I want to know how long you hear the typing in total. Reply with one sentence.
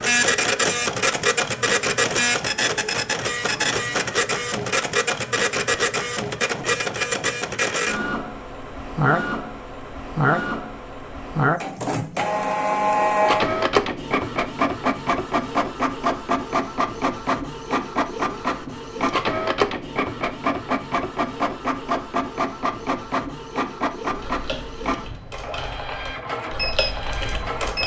The typing can be heard for 4 seconds in total.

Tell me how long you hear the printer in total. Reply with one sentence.
You can hear the printer for 28 seconds altogether.